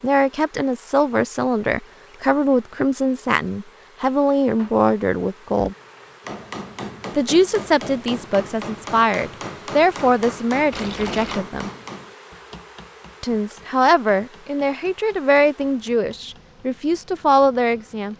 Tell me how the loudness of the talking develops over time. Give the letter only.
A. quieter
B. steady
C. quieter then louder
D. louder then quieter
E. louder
B.